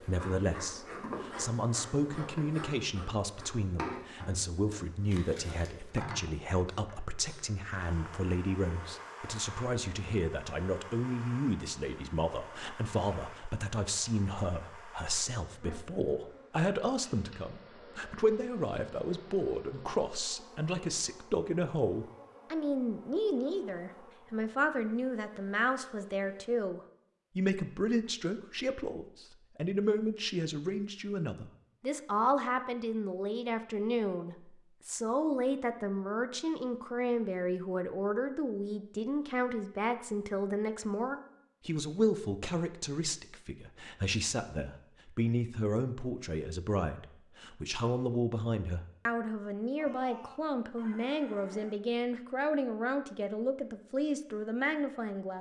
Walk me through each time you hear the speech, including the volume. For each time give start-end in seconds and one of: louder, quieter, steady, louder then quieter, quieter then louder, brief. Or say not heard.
0.0-55.3 steady.